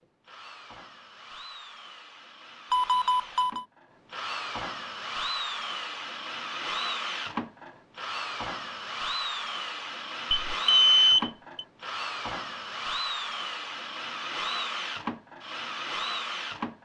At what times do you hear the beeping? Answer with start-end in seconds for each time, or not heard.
2.7-3.6, 10.3-11.7.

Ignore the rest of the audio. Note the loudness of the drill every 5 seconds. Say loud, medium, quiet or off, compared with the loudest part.
medium, loud, loud, loud.